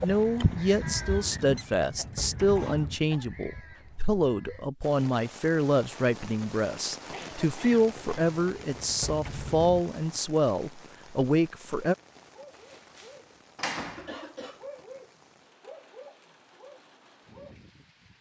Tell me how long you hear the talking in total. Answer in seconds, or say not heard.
12 s.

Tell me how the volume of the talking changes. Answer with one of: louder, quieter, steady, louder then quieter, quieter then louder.
steady.